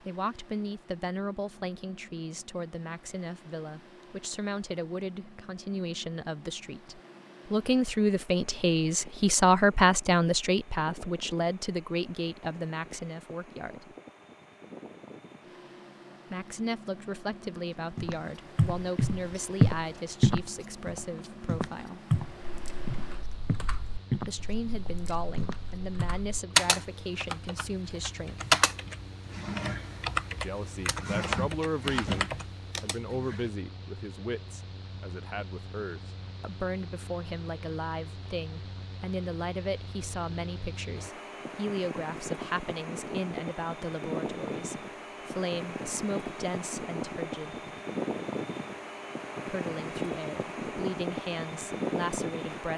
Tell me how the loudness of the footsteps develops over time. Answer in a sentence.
The volume of the footsteps goes down.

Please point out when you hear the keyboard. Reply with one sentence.
The keyboard can be heard from 22.4 to 33.5 s.